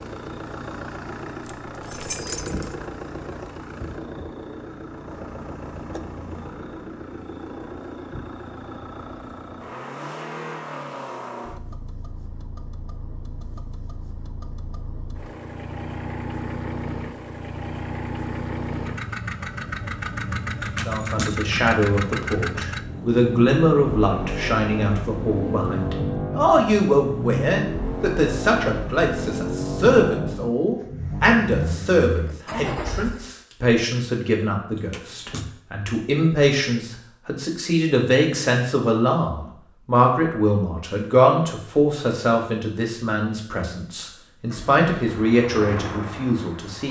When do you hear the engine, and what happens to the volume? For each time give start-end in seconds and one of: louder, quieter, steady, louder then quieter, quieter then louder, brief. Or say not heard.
0.0-33.3 louder
44.2-46.8 brief.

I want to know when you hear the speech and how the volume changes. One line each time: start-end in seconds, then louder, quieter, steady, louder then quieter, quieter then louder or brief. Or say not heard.
20.9-46.8 steady.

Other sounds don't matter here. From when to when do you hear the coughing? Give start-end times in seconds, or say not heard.
not heard.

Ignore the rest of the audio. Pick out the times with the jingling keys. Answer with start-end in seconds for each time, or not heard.
1.4-2.8, 20.6-21.4, 34.8-35.5.